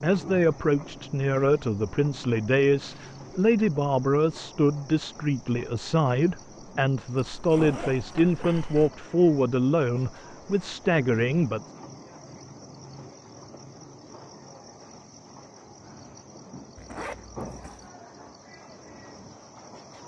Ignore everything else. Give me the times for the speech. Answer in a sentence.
The speech can be heard from 0.0 to 11.7 s.